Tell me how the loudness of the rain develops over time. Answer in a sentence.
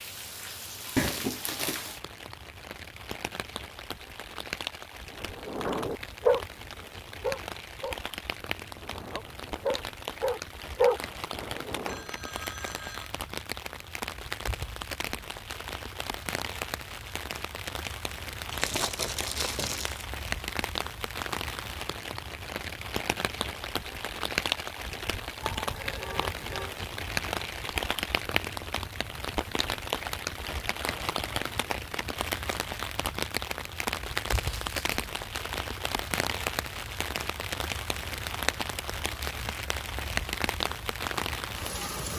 The volume of the rain goes up.